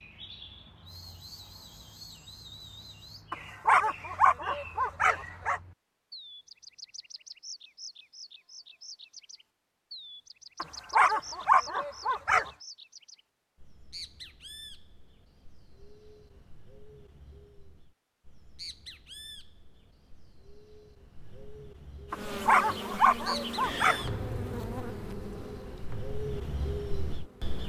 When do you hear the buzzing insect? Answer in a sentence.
The buzzing insect can be heard from 22.1 to 27.6 s.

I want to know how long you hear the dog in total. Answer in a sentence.
You can hear the dog for 6 seconds altogether.